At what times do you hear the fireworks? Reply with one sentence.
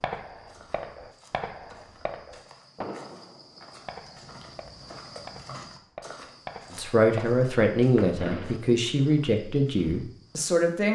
You can hear the fireworks from 0.0 to 8.6 s.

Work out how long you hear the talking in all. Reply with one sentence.
You can hear the talking for 4 seconds altogether.